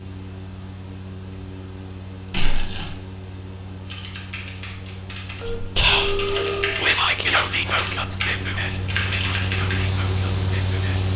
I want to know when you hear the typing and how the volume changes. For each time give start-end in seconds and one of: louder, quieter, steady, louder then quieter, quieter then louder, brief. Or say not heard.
3.9-9.8 louder.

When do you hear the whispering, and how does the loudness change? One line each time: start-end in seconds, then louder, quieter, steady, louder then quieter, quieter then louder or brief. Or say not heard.
5.5-11.1 quieter.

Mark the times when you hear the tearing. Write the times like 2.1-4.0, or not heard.
2.3-3.0.